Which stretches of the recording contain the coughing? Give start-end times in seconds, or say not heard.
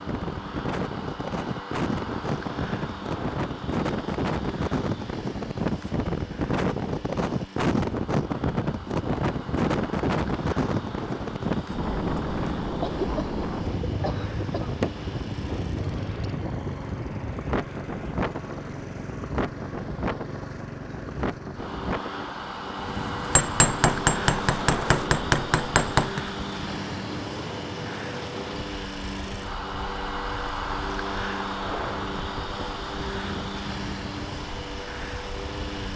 12.8-14.8.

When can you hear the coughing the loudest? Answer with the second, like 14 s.
13 s.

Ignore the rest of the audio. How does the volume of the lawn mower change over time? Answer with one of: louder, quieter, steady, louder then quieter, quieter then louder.
louder.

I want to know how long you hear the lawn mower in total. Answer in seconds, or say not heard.
36 s.